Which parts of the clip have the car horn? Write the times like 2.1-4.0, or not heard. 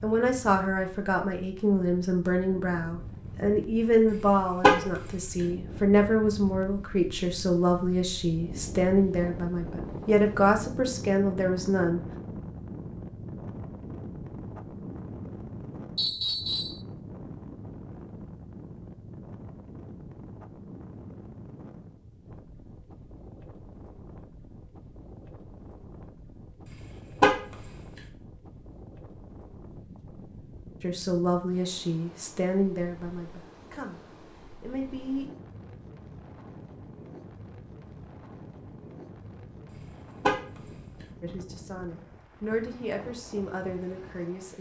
4.1-5.1, 26.7-27.7, 39.7-40.7.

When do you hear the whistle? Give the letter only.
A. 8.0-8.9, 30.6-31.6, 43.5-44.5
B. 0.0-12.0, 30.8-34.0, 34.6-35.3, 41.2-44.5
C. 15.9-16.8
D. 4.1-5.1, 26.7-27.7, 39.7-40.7
C.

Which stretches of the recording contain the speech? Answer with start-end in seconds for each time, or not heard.
0.0-12.0, 30.8-34.0, 34.6-35.3, 41.2-44.5.